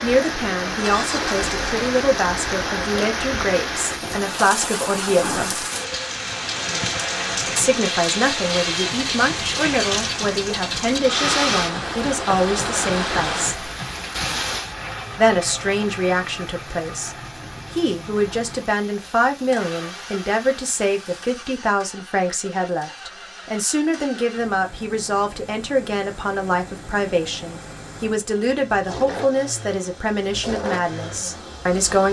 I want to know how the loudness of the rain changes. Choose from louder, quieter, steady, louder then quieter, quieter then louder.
quieter.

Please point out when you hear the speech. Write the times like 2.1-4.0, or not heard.
0.0-5.7, 7.5-13.5, 15.2-32.0.